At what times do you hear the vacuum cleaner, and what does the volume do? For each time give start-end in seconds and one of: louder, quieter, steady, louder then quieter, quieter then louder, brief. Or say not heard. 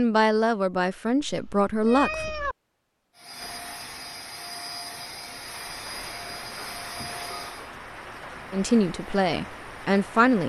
3.1-7.7 steady.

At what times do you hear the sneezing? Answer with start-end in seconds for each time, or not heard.
not heard.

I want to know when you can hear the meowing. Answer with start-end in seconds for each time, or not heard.
1.2-2.5.